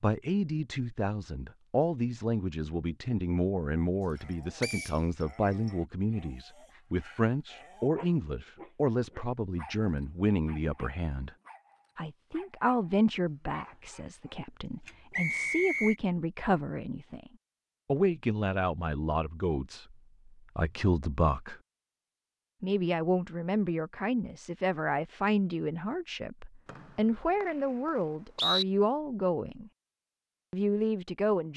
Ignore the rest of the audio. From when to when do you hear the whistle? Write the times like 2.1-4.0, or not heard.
4.6-5.0, 15.1-15.9, 26.6-28.6.